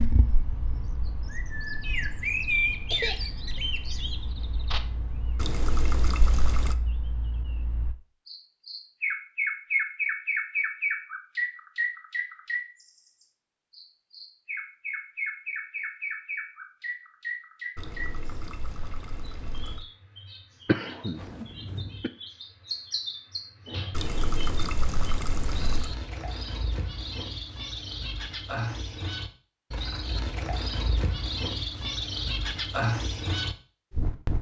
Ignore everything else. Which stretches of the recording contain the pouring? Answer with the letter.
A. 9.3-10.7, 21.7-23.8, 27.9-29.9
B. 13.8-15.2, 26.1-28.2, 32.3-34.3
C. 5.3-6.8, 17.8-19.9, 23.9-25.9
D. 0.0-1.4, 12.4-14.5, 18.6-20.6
C.